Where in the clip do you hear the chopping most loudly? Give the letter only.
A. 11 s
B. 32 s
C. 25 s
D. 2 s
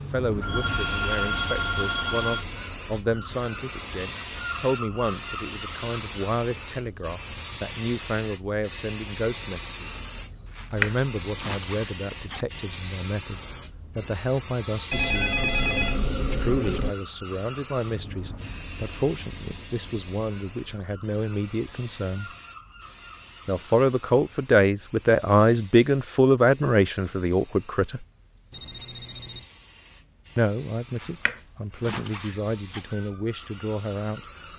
A.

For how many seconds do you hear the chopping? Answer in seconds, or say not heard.
4 s.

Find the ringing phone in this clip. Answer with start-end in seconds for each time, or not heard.
0.4-2.5, 14.9-16.9, 28.5-29.4.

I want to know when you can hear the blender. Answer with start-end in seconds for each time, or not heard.
not heard.